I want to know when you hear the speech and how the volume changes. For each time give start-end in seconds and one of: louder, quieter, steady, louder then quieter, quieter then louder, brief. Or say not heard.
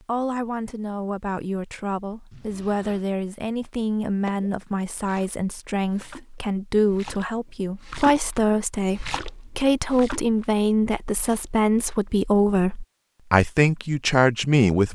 0.0-14.8 louder.